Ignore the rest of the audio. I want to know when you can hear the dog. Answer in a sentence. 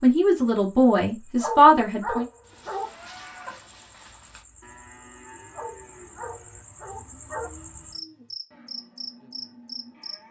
The dog can be heard from 1.4 to 2.9 s and from 5.5 to 7.5 s.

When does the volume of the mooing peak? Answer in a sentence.
The loudest moment of the mooing is at 3 seconds.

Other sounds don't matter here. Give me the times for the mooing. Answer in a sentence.
You can hear the mooing from 2.5 to 10.2 s.